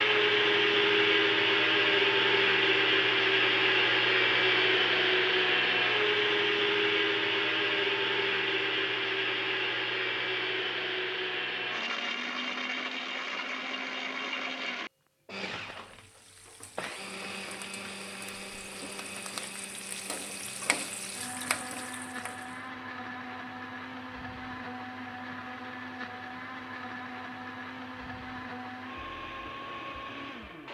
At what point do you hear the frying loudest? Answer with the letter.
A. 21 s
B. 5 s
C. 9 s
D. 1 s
A.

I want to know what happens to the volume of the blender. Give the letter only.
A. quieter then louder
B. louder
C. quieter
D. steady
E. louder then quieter
C.